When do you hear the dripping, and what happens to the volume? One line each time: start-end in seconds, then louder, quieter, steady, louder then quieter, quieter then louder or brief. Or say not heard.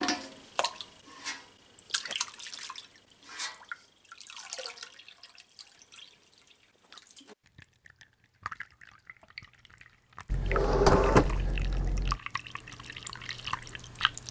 0.0-14.2 quieter then louder.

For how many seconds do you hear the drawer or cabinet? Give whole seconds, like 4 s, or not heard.
2 s.